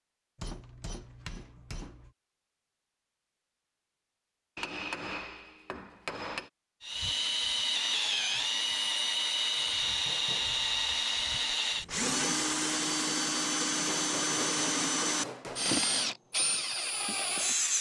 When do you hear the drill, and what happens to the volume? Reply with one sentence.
The drill can be heard from 6.8 to 17.7 s, at a steady volume.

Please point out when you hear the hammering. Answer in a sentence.
You can hear the hammering from 0.3 to 2.1 s, from 4.5 to 6.5 s, from 9.6 to 10.5 s and from 13.7 to 15.8 s.